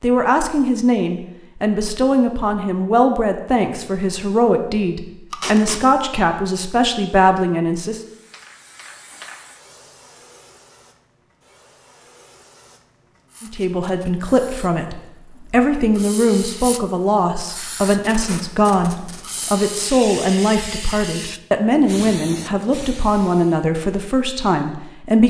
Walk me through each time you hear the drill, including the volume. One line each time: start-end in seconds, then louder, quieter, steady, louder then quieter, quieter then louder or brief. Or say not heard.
not heard.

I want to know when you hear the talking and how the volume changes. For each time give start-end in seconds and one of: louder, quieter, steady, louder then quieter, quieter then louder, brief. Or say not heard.
0.0-8.0 steady
13.4-25.2 steady.